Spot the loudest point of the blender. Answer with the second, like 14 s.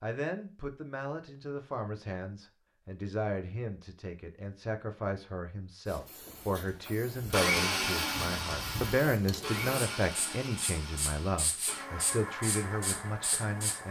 8 s.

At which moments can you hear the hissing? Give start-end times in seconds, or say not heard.
5.8-13.8.